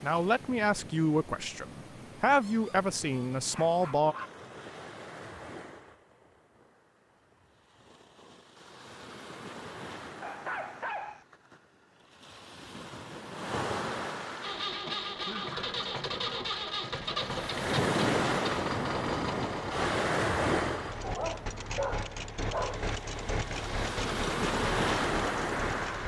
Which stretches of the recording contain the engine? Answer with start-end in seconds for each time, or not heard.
14.4-26.0.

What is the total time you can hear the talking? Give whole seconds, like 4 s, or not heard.
4 s.